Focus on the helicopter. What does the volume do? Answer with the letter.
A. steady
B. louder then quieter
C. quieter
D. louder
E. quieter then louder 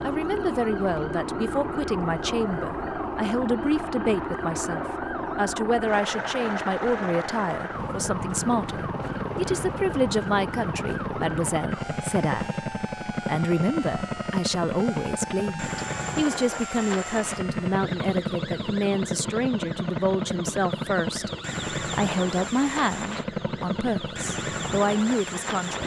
A.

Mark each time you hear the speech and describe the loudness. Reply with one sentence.
The speech can be heard from 0.0 to 25.8 s, at a steady volume.